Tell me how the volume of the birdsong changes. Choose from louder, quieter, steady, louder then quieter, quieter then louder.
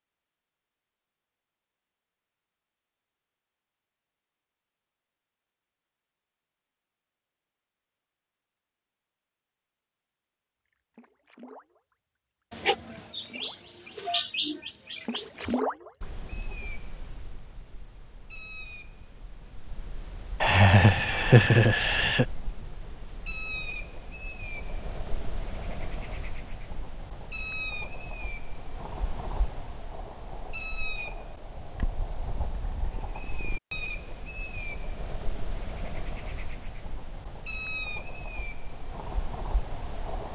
steady.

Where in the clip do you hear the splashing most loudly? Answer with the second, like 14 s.
16 s.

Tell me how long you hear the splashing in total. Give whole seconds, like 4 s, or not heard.
3 s.